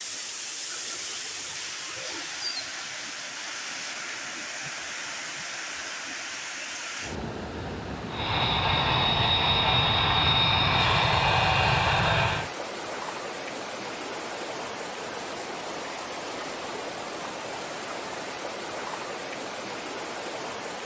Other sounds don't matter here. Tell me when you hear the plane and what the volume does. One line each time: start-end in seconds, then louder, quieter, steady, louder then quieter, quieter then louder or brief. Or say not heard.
8.1-12.5 steady.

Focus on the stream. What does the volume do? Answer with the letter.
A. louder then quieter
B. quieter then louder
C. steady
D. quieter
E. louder
C.